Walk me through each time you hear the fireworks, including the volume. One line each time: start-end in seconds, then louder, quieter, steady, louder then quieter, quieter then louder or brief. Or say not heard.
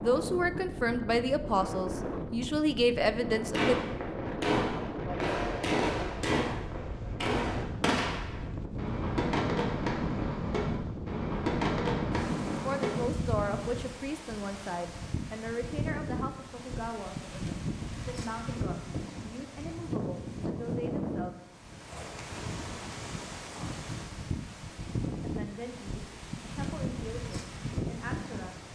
3.4-13.8 steady.